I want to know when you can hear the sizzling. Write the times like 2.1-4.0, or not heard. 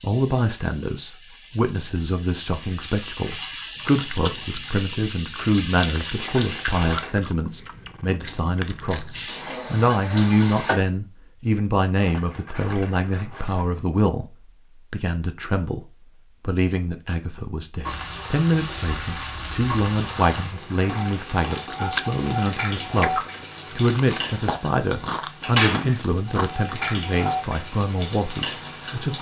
0.0-7.0, 9.1-10.8, 17.9-29.1.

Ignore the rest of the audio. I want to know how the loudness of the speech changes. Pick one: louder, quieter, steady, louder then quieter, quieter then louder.
steady.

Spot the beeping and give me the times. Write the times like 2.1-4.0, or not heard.
not heard.